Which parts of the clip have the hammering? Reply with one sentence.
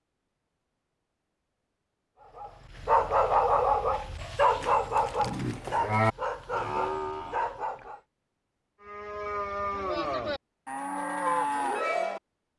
You can't hear the hammering here.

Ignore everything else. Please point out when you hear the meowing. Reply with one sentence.
The meowing can't be heard in this clip.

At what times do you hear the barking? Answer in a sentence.
The barking can be heard from 2.2 to 8.0 s.